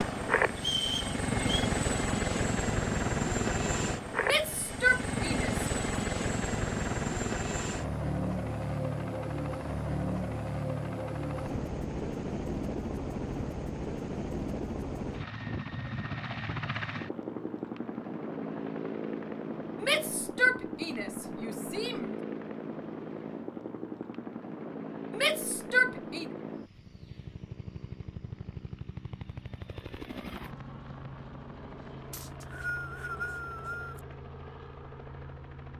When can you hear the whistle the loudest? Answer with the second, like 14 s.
1 s.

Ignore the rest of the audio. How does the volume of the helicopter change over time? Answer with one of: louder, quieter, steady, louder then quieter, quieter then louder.
quieter.